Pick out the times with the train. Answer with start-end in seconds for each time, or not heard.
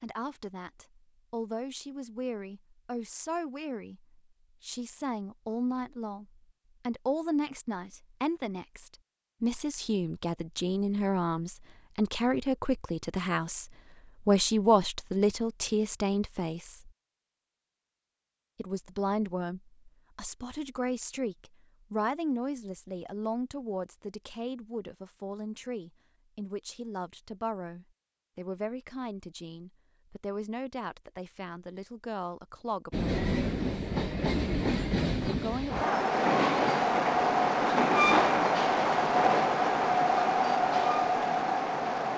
32.9-42.1.